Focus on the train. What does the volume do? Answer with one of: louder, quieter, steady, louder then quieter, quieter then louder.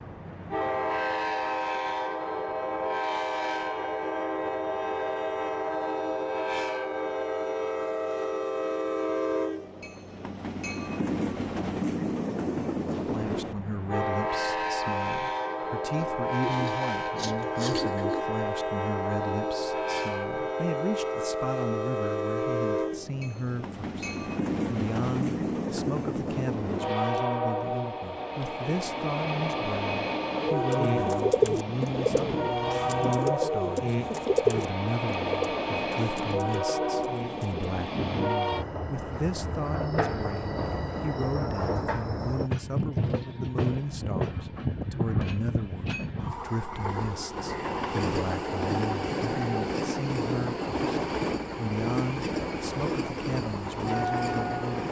steady.